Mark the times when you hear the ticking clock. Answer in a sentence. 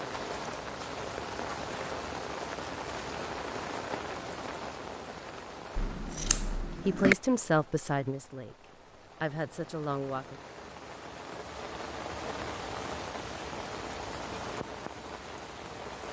The ticking clock can't be heard in this clip.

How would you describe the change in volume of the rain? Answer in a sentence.
The volume of the rain goes down, then up.